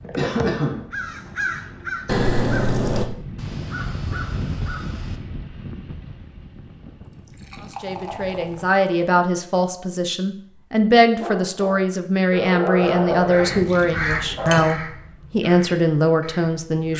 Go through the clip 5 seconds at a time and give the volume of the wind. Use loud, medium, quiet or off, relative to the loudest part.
loud, medium, off, off.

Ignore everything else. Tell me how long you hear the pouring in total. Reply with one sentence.
The pouring can be heard for 5 seconds in total.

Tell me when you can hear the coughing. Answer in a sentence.
The coughing can be heard from 0.1 to 0.8 s.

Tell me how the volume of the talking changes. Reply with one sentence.
The volume of the talking stays about the same.